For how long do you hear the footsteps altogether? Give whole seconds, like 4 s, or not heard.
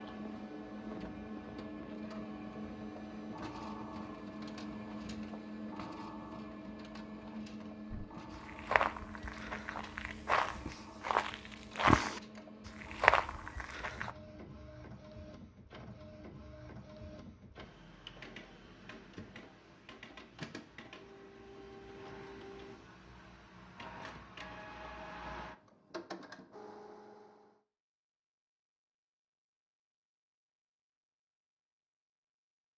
6 s.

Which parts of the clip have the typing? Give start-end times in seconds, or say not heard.
not heard.